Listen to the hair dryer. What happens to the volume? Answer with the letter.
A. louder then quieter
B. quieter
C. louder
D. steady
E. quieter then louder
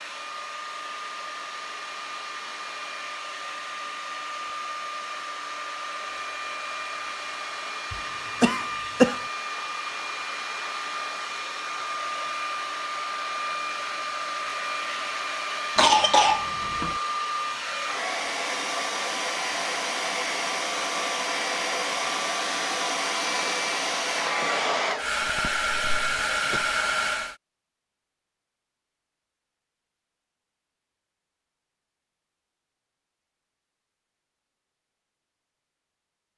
C.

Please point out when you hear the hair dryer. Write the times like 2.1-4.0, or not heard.
0.0-27.4.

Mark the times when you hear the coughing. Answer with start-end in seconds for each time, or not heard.
7.9-9.2, 15.8-16.9, 25.2-26.7.